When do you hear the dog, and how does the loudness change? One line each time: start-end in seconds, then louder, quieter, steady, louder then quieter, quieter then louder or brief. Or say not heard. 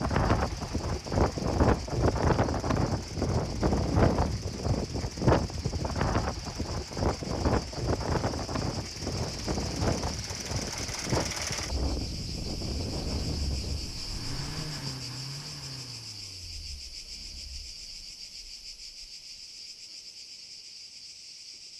not heard.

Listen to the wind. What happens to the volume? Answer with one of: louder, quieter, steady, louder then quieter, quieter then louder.
quieter.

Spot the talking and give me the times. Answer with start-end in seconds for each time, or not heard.
not heard.